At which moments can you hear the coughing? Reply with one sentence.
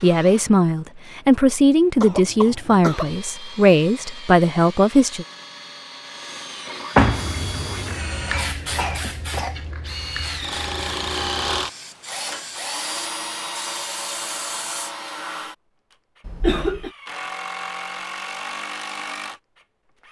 You can hear the coughing from 1.9 to 3.1 s, from 8.2 to 9.7 s and from 16.2 to 16.9 s.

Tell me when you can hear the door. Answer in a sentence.
You can hear the door from 7.0 to 7.8 s.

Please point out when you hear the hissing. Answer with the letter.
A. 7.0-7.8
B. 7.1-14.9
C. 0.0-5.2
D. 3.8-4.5
B.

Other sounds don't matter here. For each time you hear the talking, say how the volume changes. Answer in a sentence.
The talking can be heard from 0.0 to 5.2 s, at a steady volume.